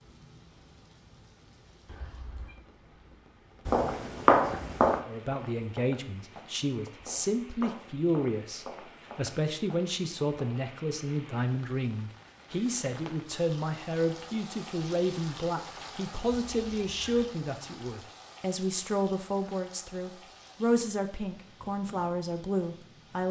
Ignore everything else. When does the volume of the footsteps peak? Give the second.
4 s.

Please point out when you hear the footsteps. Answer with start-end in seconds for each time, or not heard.
3.6-10.7.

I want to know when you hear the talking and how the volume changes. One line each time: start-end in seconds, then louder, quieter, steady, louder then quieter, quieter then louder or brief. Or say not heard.
5.0-23.2 steady.